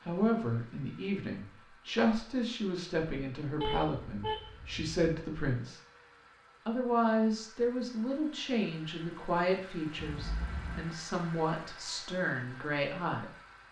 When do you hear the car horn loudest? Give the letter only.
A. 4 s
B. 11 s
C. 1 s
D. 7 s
A.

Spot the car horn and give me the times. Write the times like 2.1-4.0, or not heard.
3.6-4.9, 9.9-10.9.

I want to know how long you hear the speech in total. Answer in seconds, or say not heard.
12 s.